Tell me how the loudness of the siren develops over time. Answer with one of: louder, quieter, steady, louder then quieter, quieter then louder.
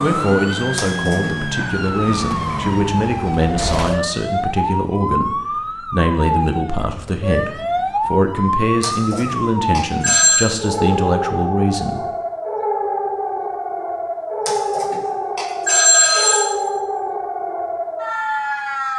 steady.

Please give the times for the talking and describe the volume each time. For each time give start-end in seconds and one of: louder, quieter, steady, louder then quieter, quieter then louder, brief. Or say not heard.
0.0-12.1 steady.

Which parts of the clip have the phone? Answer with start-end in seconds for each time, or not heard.
0.8-1.3, 8.8-10.5, 14.4-16.4.